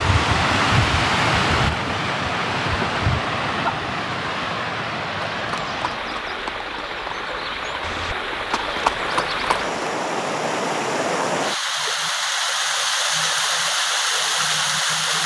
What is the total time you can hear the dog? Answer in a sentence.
The dog can't be heard in this clip.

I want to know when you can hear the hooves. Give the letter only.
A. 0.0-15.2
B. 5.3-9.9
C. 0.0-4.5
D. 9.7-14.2
B.